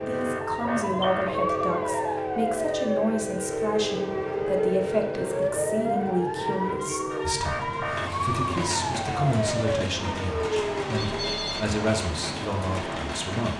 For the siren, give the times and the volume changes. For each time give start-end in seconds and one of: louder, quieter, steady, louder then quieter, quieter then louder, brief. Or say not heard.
0.0-11.3 steady.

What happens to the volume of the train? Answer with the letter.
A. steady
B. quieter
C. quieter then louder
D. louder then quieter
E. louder
A.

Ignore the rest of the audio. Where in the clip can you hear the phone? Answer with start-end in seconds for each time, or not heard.
0.6-2.2, 11.0-11.8.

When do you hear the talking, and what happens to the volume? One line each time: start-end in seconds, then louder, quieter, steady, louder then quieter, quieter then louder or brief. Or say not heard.
0.0-13.5 steady.